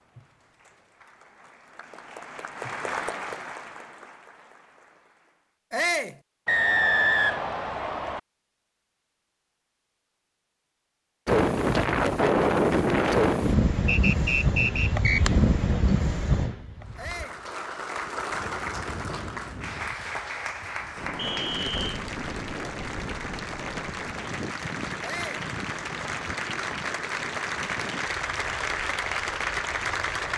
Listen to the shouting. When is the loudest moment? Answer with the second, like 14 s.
6 s.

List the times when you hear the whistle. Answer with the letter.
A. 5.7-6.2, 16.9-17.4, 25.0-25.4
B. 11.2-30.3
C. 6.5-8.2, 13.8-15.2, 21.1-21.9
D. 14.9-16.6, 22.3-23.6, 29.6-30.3
C.